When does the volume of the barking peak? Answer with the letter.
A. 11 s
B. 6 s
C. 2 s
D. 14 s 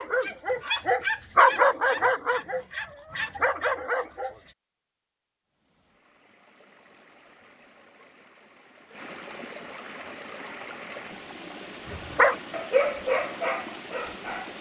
C.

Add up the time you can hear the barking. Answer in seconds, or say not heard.
7 s.